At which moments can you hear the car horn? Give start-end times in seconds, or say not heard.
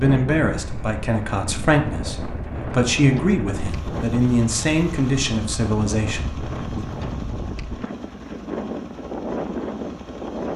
not heard.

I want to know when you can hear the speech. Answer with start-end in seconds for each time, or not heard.
0.0-6.8.